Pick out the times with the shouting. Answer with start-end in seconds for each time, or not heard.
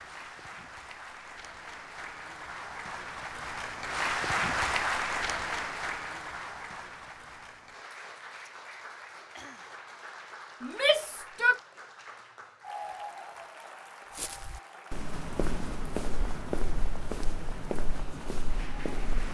10.6-11.6.